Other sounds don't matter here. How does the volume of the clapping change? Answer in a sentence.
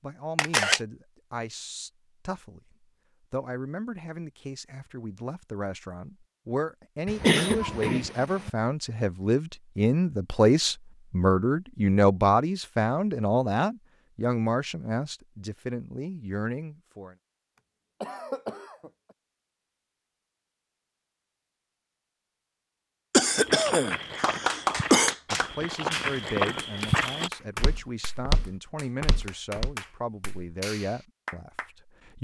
The volume of the clapping goes down.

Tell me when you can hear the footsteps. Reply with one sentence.
You can hear the footsteps from 23.4 to 29.8 s.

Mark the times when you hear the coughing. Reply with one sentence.
The coughing can be heard from 7.0 to 8.5 s, from 18.0 to 18.9 s and from 23.1 to 25.1 s.